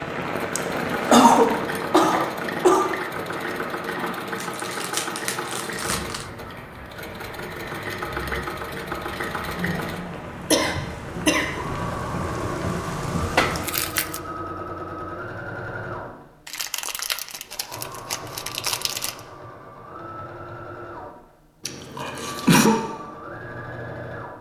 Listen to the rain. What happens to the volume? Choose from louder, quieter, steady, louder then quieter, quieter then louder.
quieter then louder.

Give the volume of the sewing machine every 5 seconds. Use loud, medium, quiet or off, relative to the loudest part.
loud, loud, loud, medium, medium.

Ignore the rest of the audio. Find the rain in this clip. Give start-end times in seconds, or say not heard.
0.0-13.7.